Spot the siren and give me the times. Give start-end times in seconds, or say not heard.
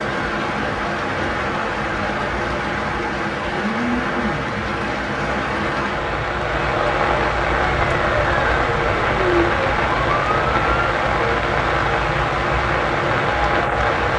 7.5-10.9.